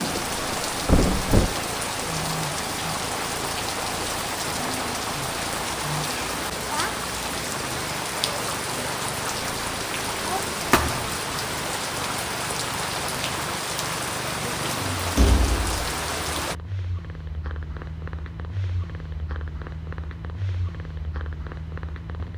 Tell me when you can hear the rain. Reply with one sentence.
The rain can be heard from 0.0 to 16.6 s.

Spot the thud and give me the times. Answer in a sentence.
The thud can be heard from 0.1 to 1.6 s, from 10.7 to 11.2 s and from 15.2 to 15.8 s.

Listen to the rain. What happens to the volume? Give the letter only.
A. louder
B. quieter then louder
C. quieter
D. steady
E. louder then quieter
D.